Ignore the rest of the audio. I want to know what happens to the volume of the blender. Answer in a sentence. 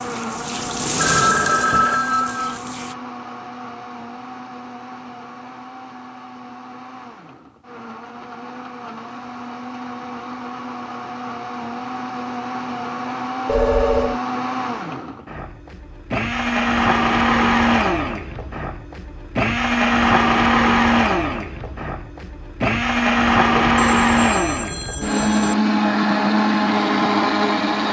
The volume of the blender goes up.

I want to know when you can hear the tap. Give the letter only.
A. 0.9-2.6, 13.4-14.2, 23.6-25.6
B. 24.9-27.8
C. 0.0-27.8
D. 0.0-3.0
D.